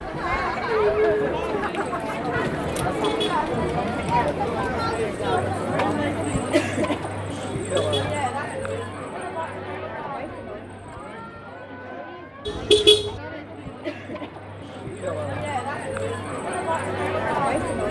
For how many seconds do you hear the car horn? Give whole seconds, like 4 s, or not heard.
2 s.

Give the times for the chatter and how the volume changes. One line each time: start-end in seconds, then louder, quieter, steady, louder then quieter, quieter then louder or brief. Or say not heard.
0.0-17.8 quieter then louder.